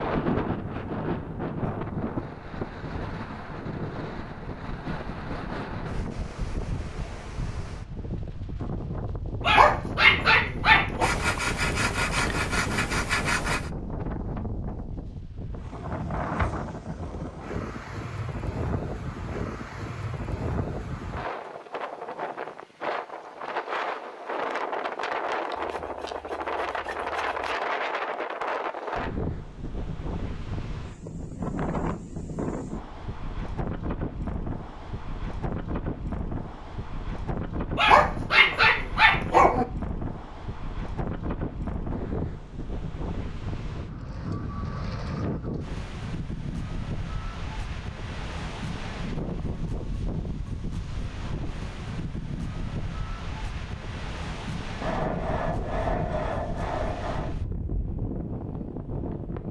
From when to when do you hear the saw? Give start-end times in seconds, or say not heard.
11.0-13.7, 25.6-27.6, 54.8-57.4.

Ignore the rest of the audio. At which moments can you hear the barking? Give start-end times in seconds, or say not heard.
9.4-11.1, 37.8-39.6.